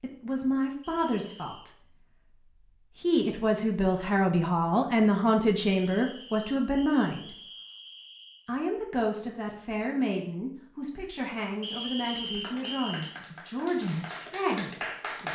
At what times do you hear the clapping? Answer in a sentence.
The clapping can be heard from 12.2 to 15.3 s.